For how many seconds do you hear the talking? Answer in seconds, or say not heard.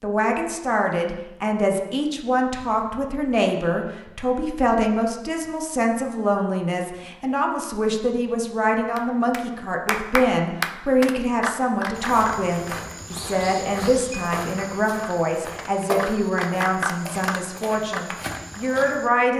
19 s.